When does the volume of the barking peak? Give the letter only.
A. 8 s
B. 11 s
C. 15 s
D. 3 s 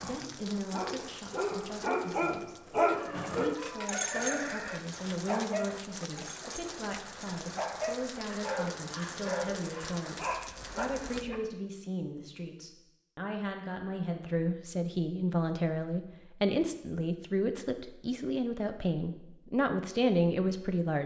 D.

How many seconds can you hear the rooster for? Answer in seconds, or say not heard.
2 s.